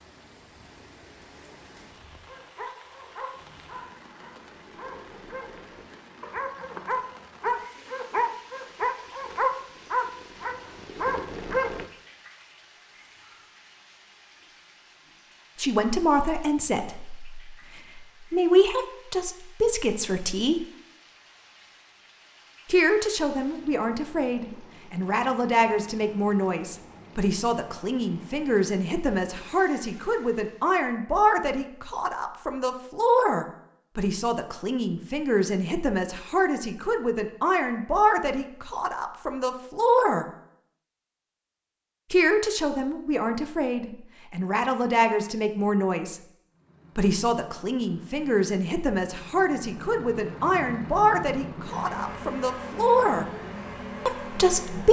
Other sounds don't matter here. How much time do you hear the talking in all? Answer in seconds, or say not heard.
34 s.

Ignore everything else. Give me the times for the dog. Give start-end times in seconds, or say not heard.
2.2-11.8.